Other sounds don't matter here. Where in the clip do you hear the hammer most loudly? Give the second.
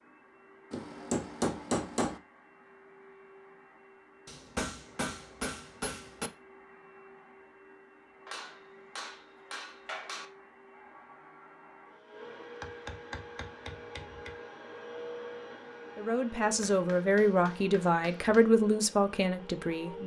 2 s.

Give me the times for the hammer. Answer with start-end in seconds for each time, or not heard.
0.7-2.2, 4.2-6.3, 8.2-10.2, 12.6-14.3, 16.5-18.4.